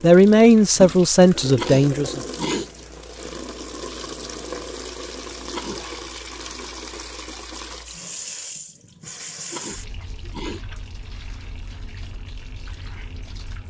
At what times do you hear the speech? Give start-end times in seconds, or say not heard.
0.0-2.2.